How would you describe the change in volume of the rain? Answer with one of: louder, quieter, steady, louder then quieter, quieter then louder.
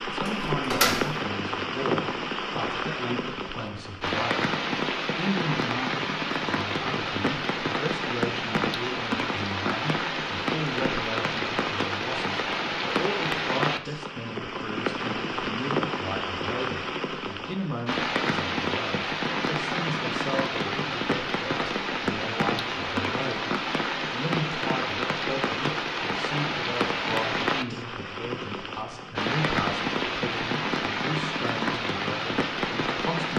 steady.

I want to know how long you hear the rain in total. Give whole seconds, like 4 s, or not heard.
33 s.